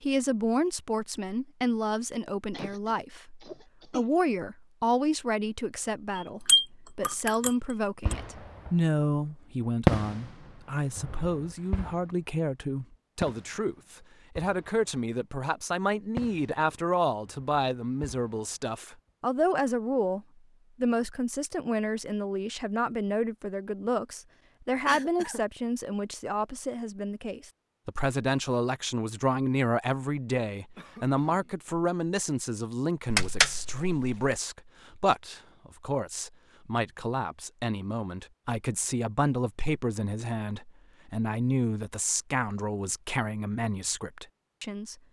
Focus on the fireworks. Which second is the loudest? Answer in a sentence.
The volume of the fireworks peaks at 10 seconds.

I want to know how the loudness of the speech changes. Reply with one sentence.
The loudness of the speech stays about the same.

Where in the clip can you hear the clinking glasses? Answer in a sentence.
You can hear the clinking glasses from 6.2 to 8.2 s and from 33.1 to 34.4 s.